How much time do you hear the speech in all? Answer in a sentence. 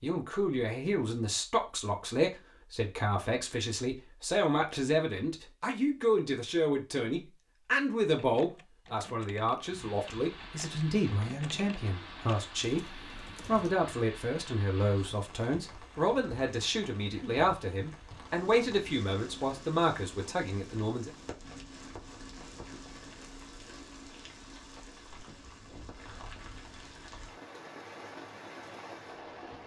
The speech can be heard for 21 seconds in total.